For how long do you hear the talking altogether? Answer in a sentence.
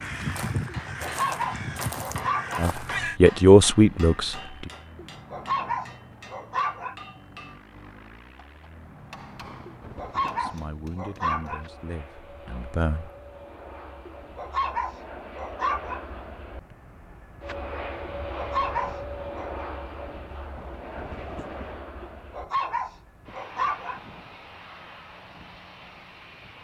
You can hear the talking for 5 seconds altogether.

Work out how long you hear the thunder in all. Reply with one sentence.
You can hear the thunder for 3 seconds altogether.